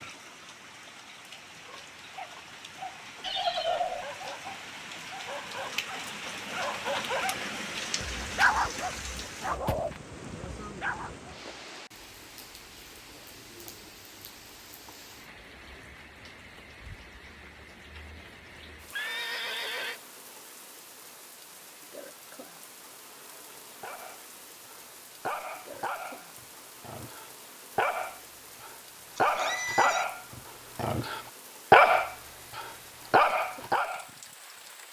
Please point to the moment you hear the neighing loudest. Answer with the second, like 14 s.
4 s.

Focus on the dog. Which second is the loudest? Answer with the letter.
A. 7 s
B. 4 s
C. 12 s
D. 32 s
D.